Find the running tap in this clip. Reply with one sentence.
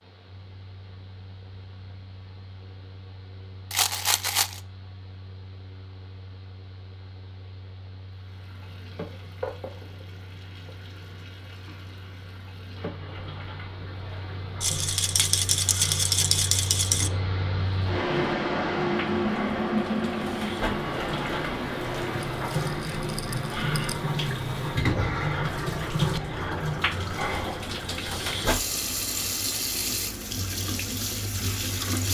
The running tap can be heard from 8.1 to 32.1 s.